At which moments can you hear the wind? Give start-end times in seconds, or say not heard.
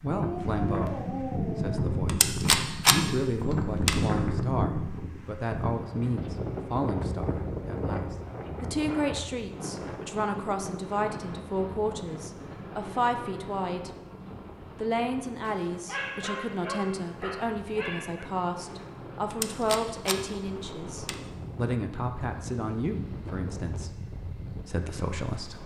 0.0-25.6.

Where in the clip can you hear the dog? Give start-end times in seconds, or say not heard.
0.1-1.9, 15.4-18.2.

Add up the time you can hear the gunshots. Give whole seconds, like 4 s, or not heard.
4 s.